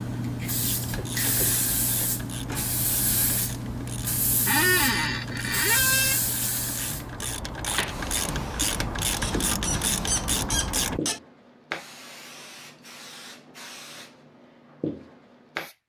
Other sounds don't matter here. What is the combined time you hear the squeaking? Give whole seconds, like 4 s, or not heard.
4 s.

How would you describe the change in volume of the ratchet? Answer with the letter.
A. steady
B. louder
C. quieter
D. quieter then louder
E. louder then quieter
B.